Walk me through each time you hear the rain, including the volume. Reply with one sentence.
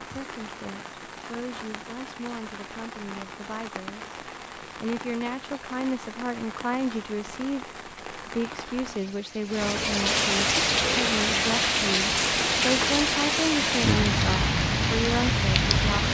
You can hear the rain from 0.0 to 16.0 s, getting louder.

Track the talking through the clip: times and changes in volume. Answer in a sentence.
You can hear the talking from 0.1 to 16.0 s, getting louder.